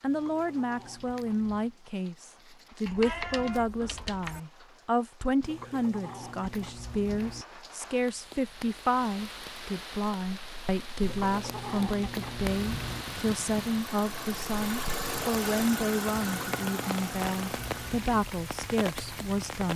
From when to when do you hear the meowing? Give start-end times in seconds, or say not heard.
2.9-4.4.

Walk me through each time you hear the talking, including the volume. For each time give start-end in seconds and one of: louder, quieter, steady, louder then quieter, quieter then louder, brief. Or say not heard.
0.0-19.7 steady.